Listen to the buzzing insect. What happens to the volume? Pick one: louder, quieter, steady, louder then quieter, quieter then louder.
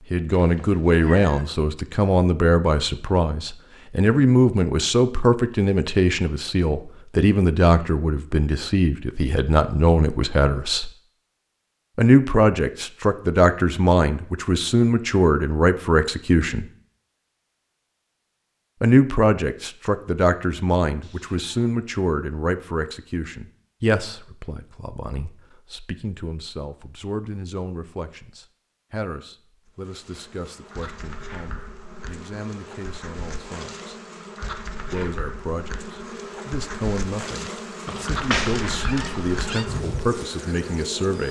louder.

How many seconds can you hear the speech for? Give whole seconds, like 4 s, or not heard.
37 s.